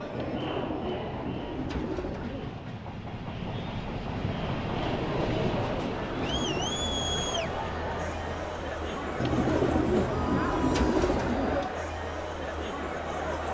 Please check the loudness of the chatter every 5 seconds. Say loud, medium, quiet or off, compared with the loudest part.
medium, loud, loud.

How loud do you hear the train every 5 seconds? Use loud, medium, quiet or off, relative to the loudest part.
loud, loud, off.